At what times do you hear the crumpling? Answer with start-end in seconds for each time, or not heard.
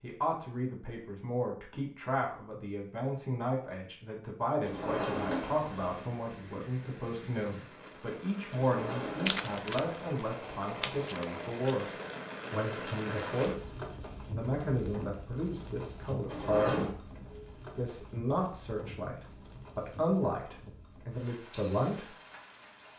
9.2-11.8.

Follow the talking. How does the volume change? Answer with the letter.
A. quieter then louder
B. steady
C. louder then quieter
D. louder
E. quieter
B.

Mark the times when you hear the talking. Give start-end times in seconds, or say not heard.
0.0-11.8, 12.5-22.1.